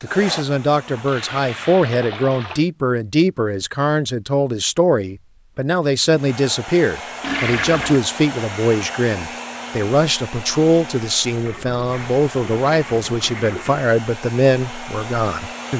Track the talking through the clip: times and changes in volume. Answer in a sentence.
You can hear the talking from 0.0 to 15.7 s, at a steady volume.